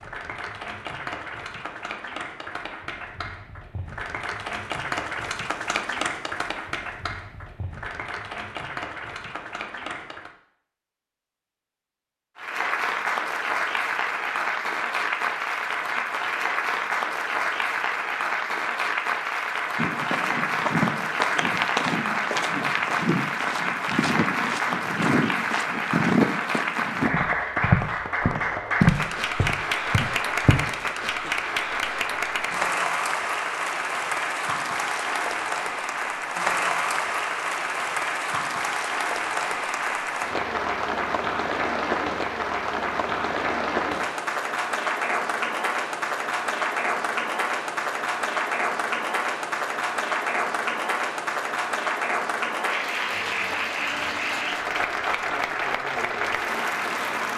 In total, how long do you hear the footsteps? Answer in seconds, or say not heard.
11 s.